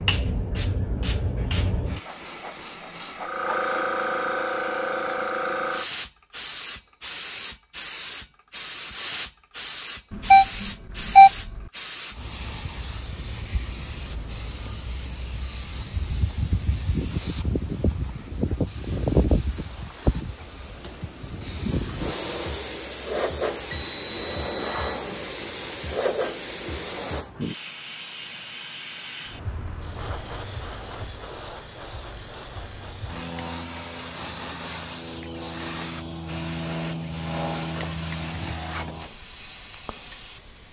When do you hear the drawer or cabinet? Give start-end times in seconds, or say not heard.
not heard.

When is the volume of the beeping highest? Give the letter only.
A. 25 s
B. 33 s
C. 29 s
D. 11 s
D.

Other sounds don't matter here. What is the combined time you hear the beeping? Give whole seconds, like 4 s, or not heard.
3 s.